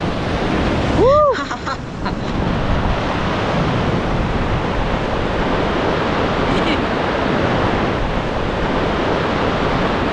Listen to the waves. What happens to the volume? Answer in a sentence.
The volume of the waves stays about the same.